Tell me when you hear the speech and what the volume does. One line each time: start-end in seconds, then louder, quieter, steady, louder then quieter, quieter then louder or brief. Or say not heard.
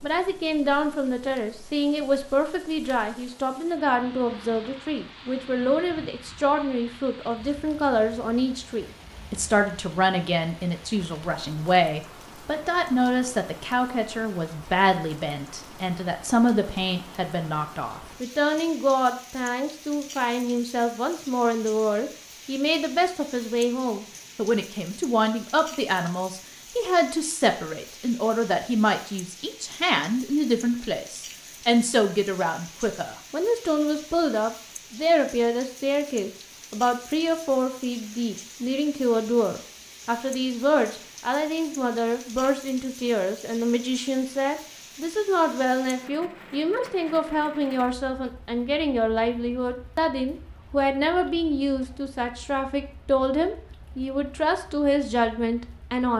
0.0-56.1 steady.